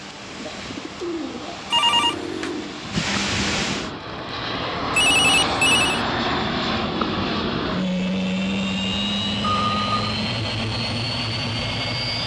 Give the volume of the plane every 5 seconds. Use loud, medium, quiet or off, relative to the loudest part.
medium, loud, loud.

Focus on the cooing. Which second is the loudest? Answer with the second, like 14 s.
3 s.